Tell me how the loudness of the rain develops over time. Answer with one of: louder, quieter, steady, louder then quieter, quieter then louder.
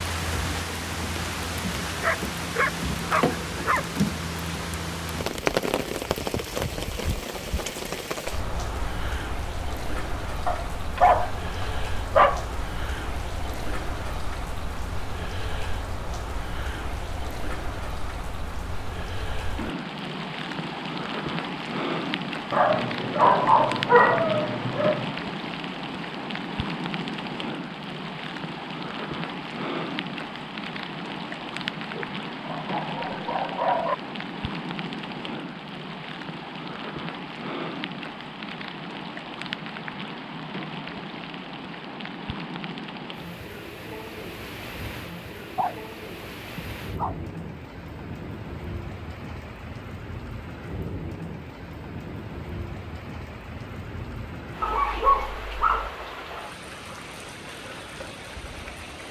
quieter.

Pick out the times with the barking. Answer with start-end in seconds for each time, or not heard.
2.0-3.9, 10.4-12.4, 22.5-25.1, 31.9-34.0, 45.4-47.1, 54.6-55.9.